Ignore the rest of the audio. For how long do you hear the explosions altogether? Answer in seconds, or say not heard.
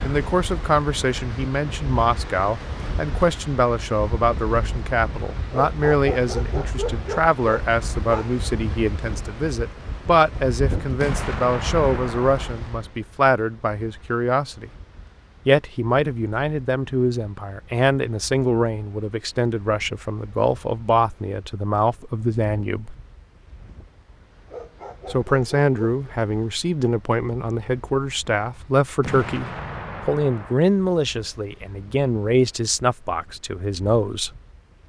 3 s.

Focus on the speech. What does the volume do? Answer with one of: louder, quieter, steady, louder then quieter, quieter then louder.
steady.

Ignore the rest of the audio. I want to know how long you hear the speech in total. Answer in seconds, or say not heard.
31 s.